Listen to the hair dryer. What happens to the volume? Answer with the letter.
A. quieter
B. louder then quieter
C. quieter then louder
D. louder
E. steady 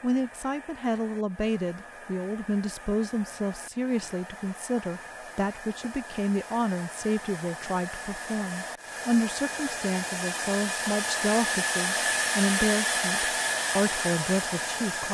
D.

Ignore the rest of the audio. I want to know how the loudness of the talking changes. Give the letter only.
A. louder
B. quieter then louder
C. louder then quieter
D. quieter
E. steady
E.